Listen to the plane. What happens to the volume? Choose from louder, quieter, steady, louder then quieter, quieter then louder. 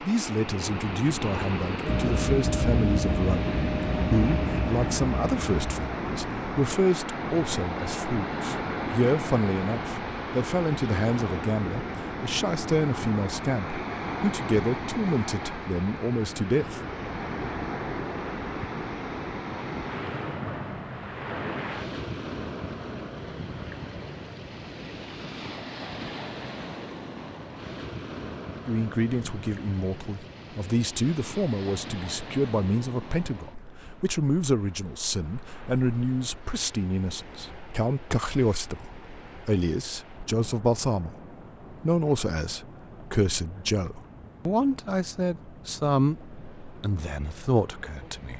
quieter.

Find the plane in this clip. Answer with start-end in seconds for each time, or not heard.
1.9-11.4.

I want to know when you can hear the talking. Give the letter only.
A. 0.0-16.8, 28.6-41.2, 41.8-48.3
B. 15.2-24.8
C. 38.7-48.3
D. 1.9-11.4
A.